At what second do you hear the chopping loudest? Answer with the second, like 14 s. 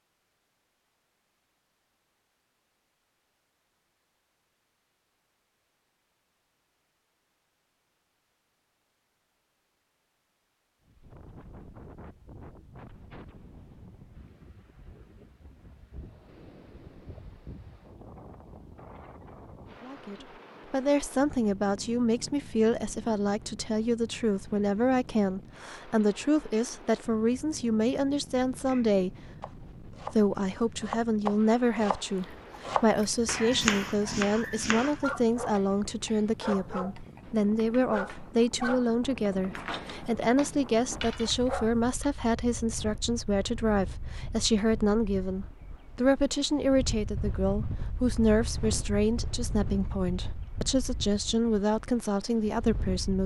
34 s.